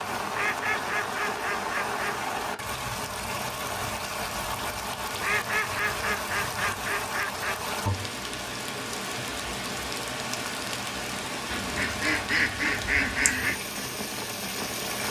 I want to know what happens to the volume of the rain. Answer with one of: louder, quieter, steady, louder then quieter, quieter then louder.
steady.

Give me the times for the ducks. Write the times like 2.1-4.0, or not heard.
0.3-2.2, 5.2-7.6, 11.5-13.6.